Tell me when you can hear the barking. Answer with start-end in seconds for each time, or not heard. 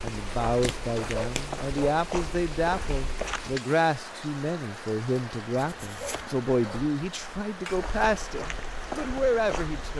1.1-2.0, 6.0-6.8.